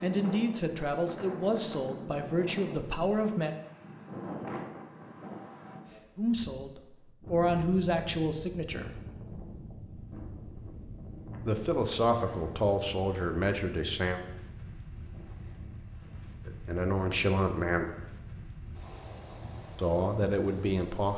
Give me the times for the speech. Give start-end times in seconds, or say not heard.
0.0-3.5, 6.2-8.9, 11.4-14.2, 16.4-17.9, 19.8-21.1.